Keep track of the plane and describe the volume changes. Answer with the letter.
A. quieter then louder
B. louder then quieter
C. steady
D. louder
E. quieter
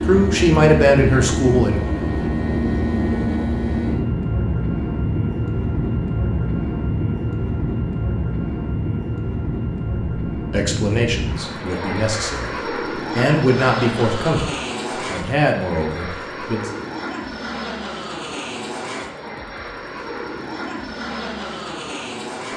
E.